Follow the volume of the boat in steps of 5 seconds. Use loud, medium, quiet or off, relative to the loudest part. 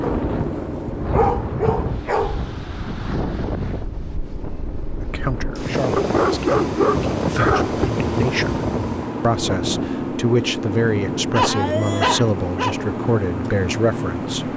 medium, loud, loud.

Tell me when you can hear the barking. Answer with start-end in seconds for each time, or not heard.
0.0-2.5, 6.0-7.9, 11.3-12.8.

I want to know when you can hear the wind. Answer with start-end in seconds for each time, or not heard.
0.0-10.1.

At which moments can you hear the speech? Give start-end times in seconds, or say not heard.
5.0-14.5.